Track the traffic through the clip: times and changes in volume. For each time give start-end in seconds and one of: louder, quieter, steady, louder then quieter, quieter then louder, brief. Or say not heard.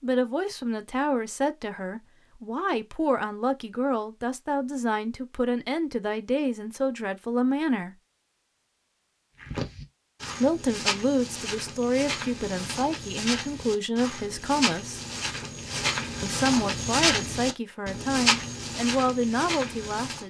not heard.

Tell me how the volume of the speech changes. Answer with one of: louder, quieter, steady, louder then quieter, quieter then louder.
steady.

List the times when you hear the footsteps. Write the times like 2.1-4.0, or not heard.
9.4-20.2.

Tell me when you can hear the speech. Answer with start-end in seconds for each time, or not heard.
0.0-8.0, 10.4-15.0, 16.2-20.2.